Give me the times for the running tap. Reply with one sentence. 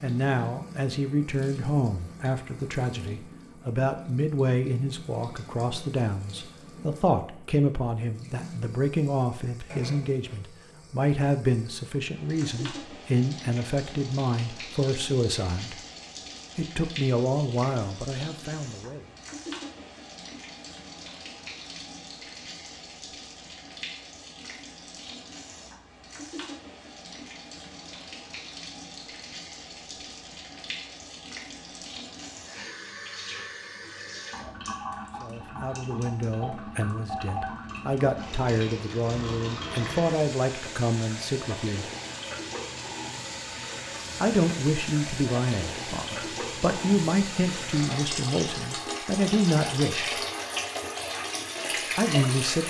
You can hear the running tap from 0.0 to 52.6 s.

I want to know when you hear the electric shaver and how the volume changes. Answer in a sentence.
The electric shaver can't be heard in this clip.